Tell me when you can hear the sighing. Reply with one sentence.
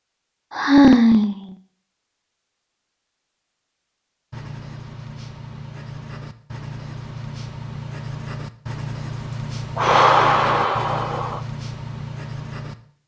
The sighing can be heard from 0.5 to 1.6 s and from 9.8 to 11.4 s.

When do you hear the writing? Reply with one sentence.
The writing can be heard from 4.3 to 12.8 s.